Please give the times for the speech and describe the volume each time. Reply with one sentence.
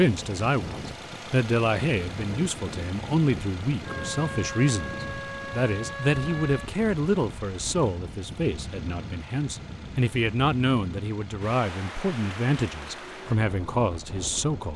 You can hear the speech from 0.0 to 14.7 s, at a steady volume.